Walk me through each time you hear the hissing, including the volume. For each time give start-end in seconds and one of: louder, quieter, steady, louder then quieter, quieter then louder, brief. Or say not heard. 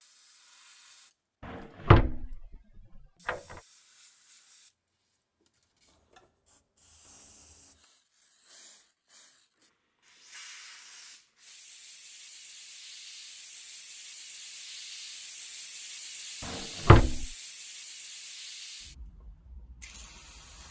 0.0-20.6 louder.